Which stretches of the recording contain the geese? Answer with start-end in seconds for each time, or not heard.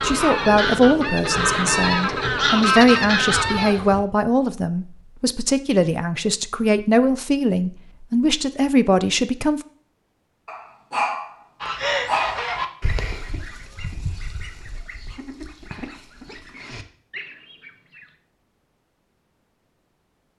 0.0-4.0, 11.6-18.1.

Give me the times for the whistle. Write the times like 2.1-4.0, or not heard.
not heard.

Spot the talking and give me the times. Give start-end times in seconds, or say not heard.
0.0-9.6.